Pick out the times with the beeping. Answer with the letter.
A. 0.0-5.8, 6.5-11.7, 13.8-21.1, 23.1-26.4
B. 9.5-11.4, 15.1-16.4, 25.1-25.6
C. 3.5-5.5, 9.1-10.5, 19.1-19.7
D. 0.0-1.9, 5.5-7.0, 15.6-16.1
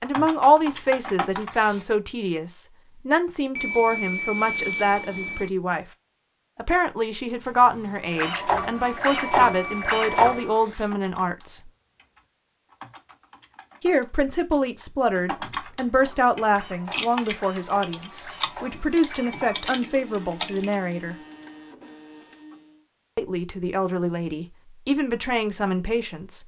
C.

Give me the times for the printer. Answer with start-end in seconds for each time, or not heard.
7.3-10.8, 15.8-22.9.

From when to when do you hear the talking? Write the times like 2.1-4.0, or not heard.
0.0-5.8, 6.5-11.7, 13.8-21.1, 23.1-26.4.